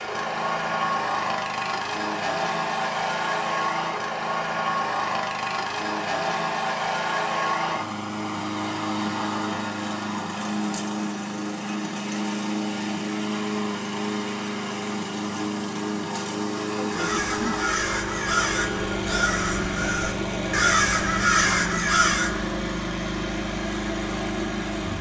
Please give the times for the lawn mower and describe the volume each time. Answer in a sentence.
The lawn mower can be heard from 0.0 to 24.9 s, at a steady volume.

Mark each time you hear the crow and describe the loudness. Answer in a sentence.
The crow can be heard from 16.9 to 22.5 s, getting louder.